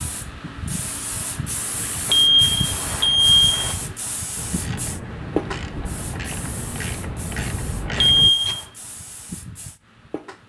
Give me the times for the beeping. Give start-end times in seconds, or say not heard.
2.0-3.8, 8.0-8.7.